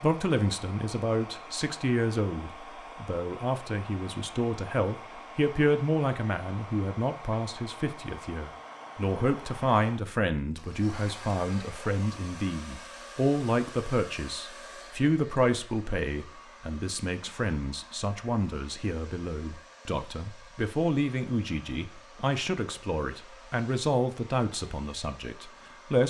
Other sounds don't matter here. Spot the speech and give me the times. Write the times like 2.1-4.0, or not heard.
0.0-26.0.